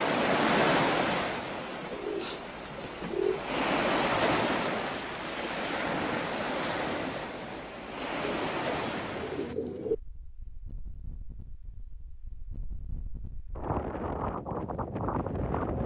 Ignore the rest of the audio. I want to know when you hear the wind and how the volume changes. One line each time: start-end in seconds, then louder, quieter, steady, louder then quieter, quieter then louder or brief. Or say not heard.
0.0-15.8 quieter then louder.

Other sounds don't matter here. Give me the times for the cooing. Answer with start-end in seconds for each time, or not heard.
1.9-3.4, 8.2-9.9.